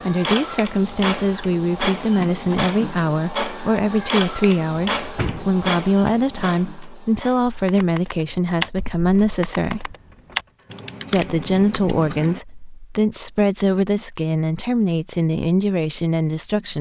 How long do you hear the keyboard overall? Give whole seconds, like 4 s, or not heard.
5 s.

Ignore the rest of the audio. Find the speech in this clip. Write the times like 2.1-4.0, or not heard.
0.0-9.9, 11.1-16.7.